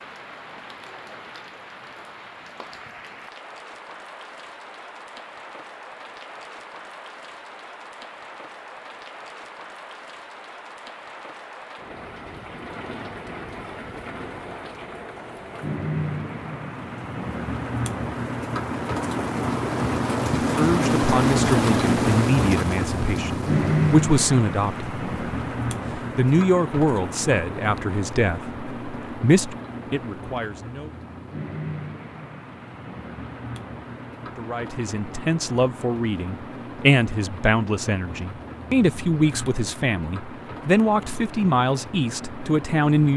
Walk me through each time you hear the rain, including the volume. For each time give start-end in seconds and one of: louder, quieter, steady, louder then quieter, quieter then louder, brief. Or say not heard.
0.0-43.1 louder then quieter.